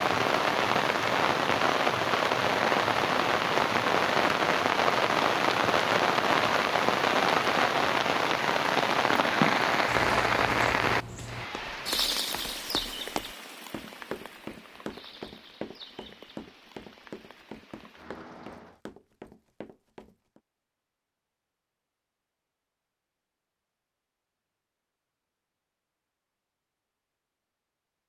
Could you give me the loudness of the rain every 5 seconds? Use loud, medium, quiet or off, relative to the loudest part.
loud, loud, medium, quiet, off, off.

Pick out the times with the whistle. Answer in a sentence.
You can't hear the whistle here.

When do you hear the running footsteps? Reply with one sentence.
The running footsteps can be heard from 9.1 to 20.4 s.